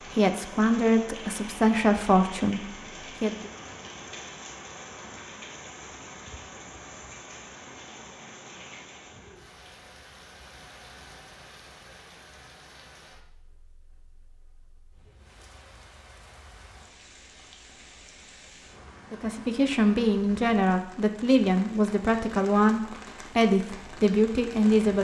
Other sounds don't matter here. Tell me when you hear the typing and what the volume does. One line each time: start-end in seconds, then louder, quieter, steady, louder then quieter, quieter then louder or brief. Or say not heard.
not heard.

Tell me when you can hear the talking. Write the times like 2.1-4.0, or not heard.
0.1-3.5, 19.1-24.9.